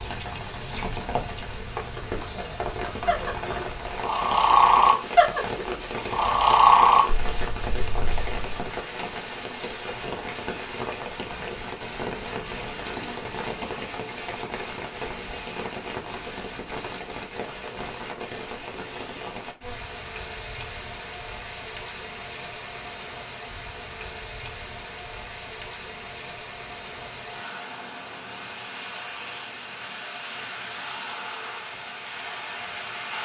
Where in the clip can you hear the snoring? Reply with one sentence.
You can hear the snoring from 3.0 to 8.7 s.